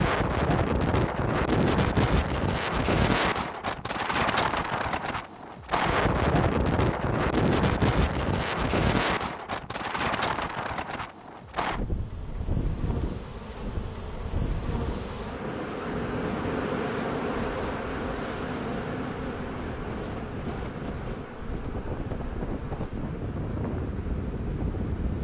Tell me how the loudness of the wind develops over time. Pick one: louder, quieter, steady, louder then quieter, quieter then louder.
quieter.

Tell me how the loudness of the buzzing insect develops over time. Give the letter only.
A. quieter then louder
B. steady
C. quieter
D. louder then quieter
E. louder
D.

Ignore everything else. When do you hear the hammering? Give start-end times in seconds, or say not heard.
not heard.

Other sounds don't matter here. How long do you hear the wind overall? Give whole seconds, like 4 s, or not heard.
25 s.